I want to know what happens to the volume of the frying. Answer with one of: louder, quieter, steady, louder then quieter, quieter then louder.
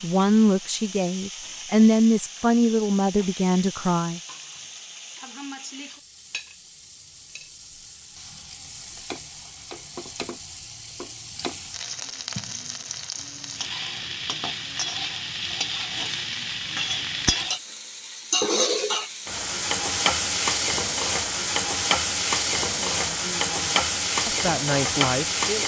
louder.